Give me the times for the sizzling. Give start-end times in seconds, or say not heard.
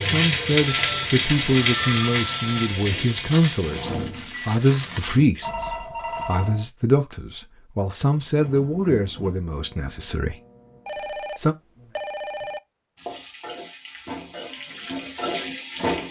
0.0-3.9, 12.9-16.0.